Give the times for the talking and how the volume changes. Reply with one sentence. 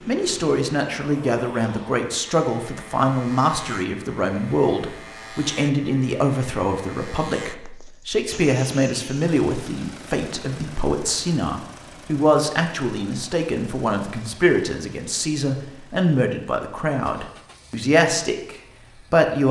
You can hear the talking from 0.1 to 19.4 s, at a steady volume.